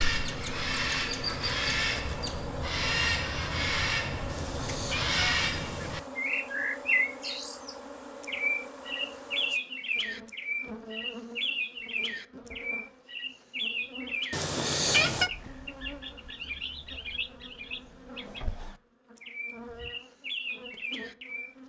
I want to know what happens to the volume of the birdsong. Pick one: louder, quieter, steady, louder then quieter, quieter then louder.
quieter.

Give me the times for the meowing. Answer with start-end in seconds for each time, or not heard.
4.2-6.1, 14.3-15.3.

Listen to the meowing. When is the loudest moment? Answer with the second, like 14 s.
15 s.